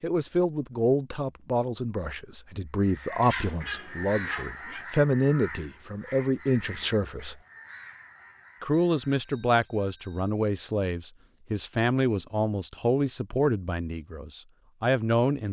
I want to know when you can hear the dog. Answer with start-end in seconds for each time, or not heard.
3.2-4.8.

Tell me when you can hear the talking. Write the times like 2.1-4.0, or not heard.
0.0-7.4, 8.6-15.4.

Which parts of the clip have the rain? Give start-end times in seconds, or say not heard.
not heard.